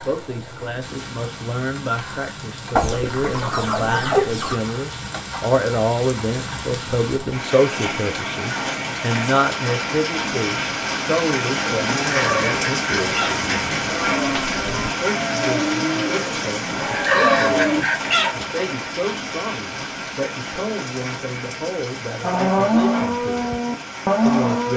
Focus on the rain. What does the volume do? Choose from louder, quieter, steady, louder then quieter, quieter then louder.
louder then quieter.